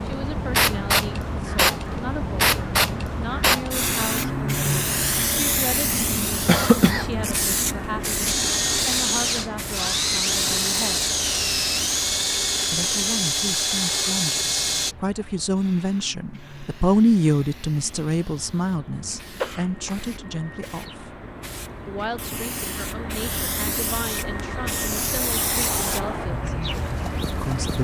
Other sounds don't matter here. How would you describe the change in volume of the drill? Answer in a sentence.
The loudness of the drill stays about the same.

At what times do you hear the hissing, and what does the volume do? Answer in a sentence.
You can hear the hissing from 0.0 to 27.7 s, getting quieter then louder.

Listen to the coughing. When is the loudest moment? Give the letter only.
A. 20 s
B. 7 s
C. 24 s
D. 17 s
B.